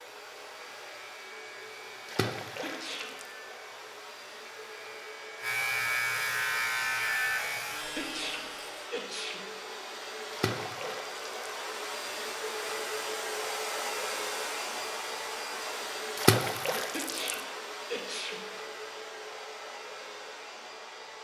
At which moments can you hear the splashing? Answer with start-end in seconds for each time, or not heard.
2.0-3.2, 10.3-11.3, 16.1-17.4.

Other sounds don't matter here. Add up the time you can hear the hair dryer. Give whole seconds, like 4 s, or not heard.
21 s.